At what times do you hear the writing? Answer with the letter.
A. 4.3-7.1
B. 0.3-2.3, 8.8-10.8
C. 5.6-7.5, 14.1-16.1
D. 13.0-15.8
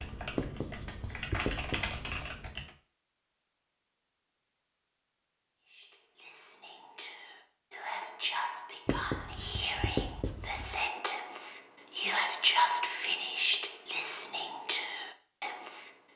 B.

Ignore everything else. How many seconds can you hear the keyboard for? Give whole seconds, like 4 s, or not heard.
3 s.